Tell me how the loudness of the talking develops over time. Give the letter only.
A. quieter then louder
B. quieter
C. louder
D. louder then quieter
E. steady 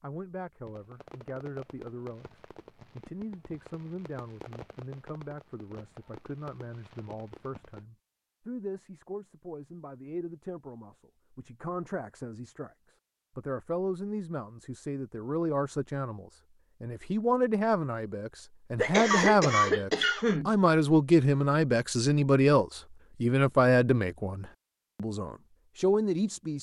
C.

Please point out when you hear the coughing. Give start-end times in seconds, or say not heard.
18.8-20.5.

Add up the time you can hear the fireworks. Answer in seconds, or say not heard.
7 s.